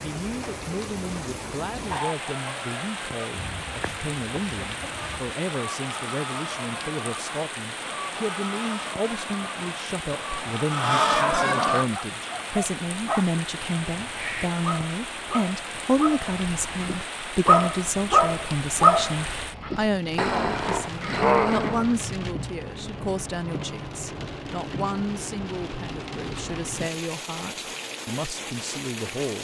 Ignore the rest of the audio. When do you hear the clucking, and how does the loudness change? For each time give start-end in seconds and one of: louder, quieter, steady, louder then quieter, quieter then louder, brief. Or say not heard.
1.8-11.8 louder.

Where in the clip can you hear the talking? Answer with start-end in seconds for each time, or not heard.
0.0-29.3.